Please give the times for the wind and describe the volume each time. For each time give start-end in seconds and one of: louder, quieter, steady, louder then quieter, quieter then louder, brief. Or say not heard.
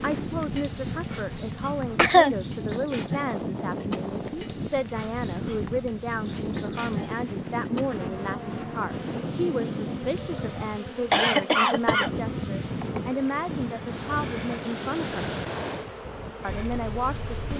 0.0-17.5 steady.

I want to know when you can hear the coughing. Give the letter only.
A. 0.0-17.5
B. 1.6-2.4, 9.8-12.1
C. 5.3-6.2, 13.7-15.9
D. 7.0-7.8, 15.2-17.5
B.